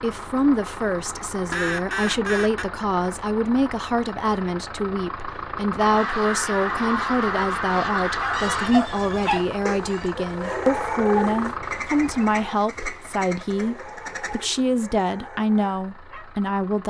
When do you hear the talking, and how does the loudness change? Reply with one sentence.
The talking can be heard from 0.0 to 16.8 s, at a steady volume.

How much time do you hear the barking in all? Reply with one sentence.
The barking can be heard for 8 seconds in total.